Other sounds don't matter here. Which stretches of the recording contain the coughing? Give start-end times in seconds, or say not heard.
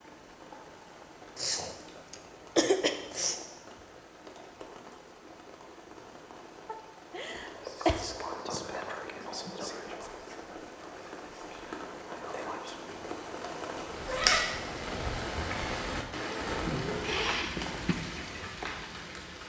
1.4-3.4, 6.7-8.1, 17.0-17.9.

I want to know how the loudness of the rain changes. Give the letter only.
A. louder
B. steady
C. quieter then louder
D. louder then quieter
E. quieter
A.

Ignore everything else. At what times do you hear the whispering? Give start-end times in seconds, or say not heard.
7.3-12.8.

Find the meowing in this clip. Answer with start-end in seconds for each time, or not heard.
13.9-14.6.